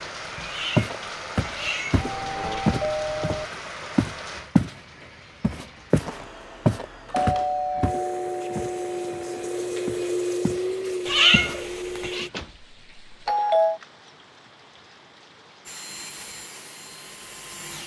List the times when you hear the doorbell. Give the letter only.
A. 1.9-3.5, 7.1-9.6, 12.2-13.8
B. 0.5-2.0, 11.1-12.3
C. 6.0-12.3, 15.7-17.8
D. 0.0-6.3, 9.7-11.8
A.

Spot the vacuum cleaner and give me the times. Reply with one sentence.
You can hear the vacuum cleaner from 6.0 to 12.3 s and from 15.7 to 17.8 s.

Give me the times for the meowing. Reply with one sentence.
You can hear the meowing from 0.5 to 2.0 s and from 11.1 to 12.3 s.